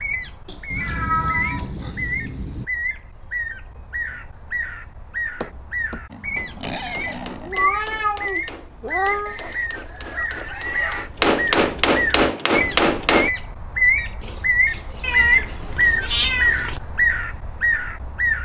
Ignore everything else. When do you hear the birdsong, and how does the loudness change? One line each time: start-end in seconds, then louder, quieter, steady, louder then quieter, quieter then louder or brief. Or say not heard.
0.0-18.4 louder.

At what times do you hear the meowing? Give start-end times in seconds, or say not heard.
0.7-2.6, 7.4-9.3, 15.0-16.6.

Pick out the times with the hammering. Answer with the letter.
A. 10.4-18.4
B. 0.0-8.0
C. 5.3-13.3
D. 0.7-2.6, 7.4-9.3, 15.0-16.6
C.